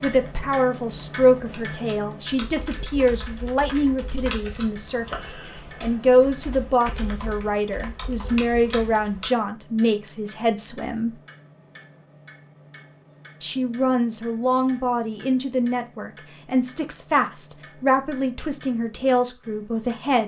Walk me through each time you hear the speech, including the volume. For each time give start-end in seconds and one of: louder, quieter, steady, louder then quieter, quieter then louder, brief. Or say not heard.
0.0-11.2 steady
13.4-20.2 steady.